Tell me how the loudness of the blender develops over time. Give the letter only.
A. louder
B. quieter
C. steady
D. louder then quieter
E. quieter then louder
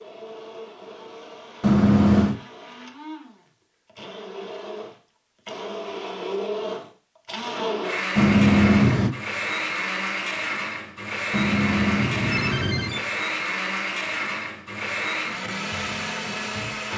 A.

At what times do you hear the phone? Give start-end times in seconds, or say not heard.
1.6-2.4, 8.2-9.2, 11.3-13.1.